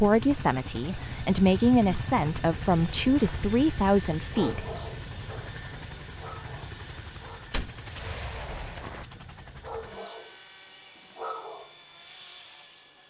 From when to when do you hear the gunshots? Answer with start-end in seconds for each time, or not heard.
7.5-9.1.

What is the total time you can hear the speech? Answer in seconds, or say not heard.
5 s.